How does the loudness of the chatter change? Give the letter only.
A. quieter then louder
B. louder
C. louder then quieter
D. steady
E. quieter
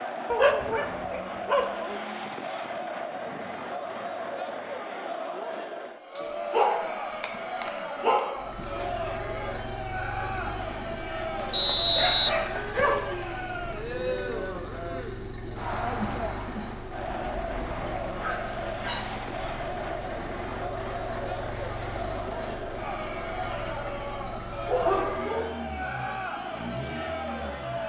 D.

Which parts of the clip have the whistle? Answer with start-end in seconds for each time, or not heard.
11.5-13.0.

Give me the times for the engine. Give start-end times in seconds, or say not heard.
8.3-27.8.